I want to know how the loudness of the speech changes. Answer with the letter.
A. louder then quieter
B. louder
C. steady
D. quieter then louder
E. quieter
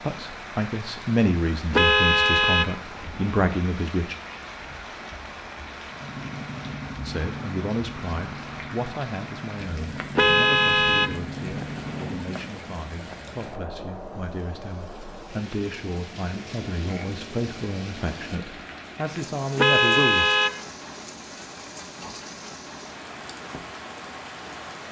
D.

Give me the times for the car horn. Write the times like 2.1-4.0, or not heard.
1.7-3.3, 10.2-12.2, 19.6-20.6.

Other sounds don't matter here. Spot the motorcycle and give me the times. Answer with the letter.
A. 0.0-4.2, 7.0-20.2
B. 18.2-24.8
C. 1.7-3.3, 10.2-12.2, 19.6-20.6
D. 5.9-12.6
D.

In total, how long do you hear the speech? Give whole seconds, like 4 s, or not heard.
17 s.